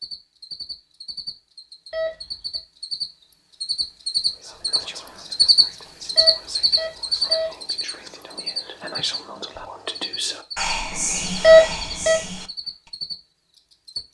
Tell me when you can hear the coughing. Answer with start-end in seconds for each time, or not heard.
not heard.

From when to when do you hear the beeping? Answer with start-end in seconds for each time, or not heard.
1.9-2.5, 6.2-7.5, 11.4-12.2.